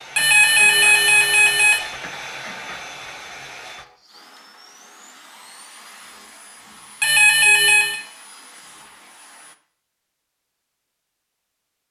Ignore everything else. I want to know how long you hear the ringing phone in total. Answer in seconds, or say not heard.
3 s.